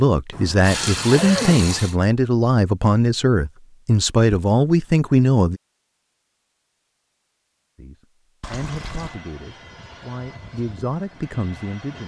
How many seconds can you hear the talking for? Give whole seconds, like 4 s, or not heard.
10 s.